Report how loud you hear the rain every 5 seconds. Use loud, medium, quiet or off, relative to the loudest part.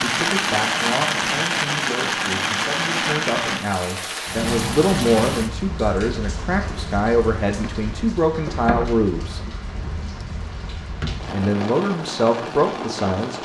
loud, medium, medium.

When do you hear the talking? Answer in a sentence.
You can hear the talking from 0.0 to 9.4 s and from 11.3 to 13.4 s.